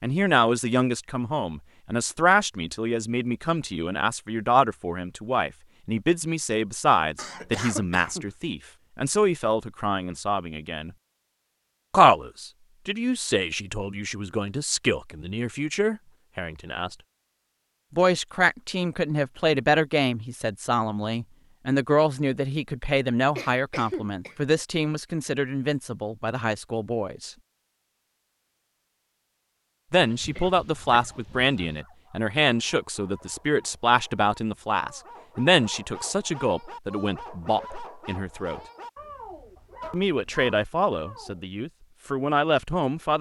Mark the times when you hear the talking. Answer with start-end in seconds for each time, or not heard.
0.0-10.9, 11.9-16.9, 17.9-27.3, 29.9-38.6, 39.9-43.1.